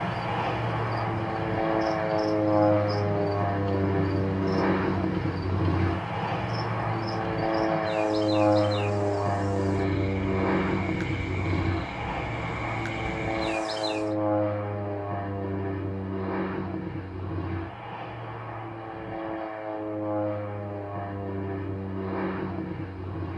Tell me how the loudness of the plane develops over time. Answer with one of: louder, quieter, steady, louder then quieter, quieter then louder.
quieter.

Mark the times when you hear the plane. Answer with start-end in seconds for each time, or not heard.
0.0-23.3.